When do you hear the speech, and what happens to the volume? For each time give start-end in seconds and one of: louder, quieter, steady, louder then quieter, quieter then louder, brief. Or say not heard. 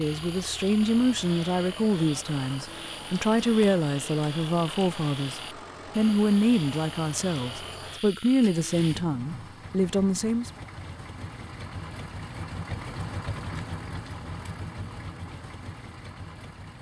0.0-10.5 steady.